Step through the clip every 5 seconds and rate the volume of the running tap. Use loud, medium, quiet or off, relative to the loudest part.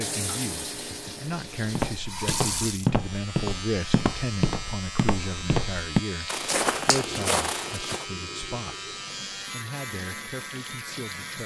loud, medium, medium.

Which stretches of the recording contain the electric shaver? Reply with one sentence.
The electric shaver can be heard from 2.9 to 11.4 s.